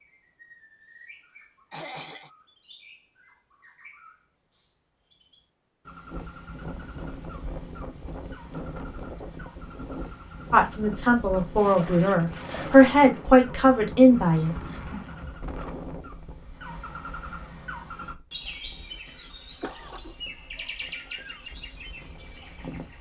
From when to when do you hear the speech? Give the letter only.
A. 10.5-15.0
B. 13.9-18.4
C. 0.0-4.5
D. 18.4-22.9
A.